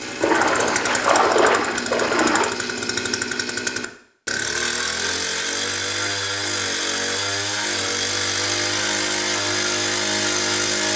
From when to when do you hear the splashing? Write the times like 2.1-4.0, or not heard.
0.2-2.5.